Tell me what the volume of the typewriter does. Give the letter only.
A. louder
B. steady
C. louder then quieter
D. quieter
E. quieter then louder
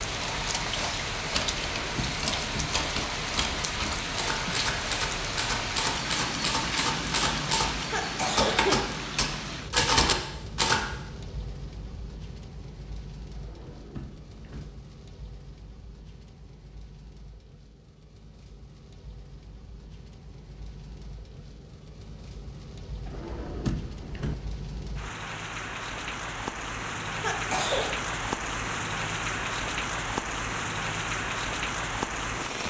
A.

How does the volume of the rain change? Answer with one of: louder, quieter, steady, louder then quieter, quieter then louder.
quieter then louder.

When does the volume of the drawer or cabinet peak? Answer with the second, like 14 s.
24 s.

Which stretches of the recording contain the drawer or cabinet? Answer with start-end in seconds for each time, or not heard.
1.5-2.7, 13.3-14.7, 23.1-24.4.